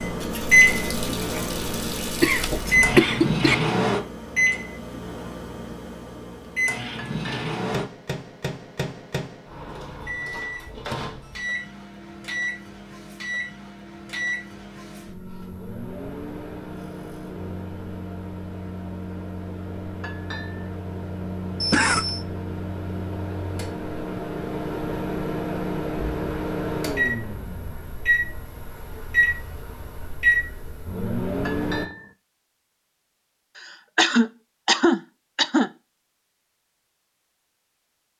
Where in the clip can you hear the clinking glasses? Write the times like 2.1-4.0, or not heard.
7.0-7.5, 20.0-20.7, 31.4-32.1.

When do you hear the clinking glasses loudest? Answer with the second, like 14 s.
32 s.